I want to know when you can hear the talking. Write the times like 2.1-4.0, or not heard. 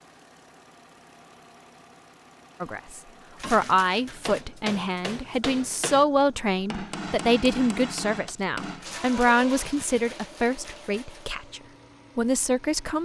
2.6-13.0.